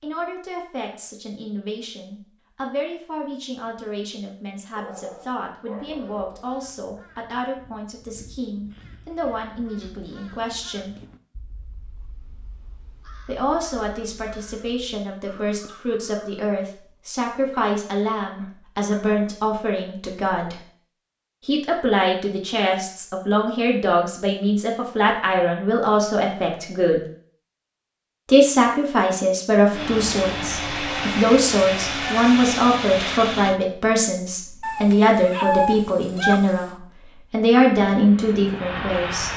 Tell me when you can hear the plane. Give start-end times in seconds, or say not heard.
29.7-33.6, 37.7-39.3.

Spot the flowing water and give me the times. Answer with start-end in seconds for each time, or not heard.
not heard.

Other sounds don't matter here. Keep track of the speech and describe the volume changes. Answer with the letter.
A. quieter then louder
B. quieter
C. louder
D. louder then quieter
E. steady
C.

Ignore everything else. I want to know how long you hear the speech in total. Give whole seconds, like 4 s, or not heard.
35 s.